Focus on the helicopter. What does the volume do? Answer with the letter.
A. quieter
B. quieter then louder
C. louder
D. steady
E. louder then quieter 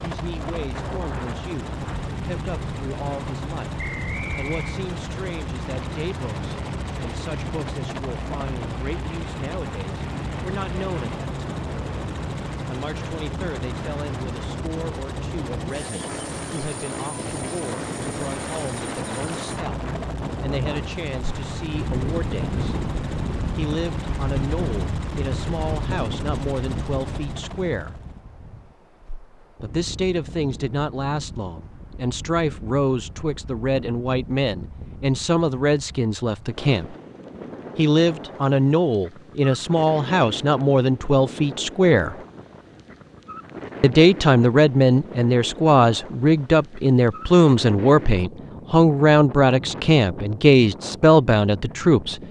D.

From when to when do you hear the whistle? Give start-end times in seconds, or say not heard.
3.8-4.8.